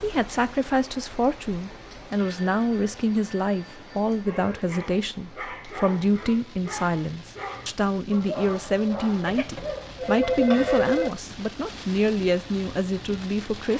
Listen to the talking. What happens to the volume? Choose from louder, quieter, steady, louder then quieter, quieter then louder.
steady.